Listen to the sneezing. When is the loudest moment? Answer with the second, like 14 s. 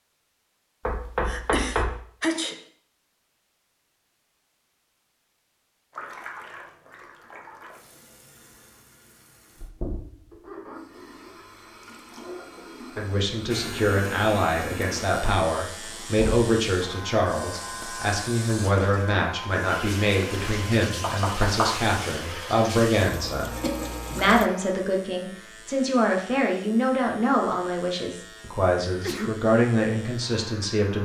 2 s.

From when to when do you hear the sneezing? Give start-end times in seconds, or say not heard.
1.2-2.6, 28.9-29.4.